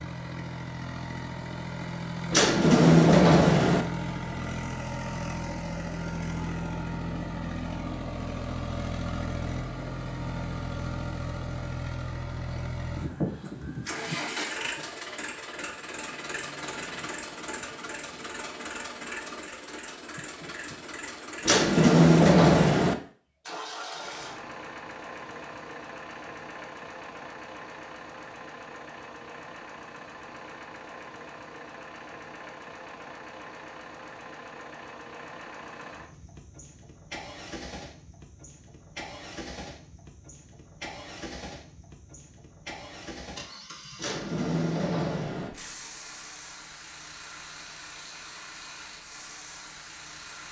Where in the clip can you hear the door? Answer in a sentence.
You can hear the door from 2.3 to 3.9 s, from 21.4 to 22.9 s and from 44.0 to 45.5 s.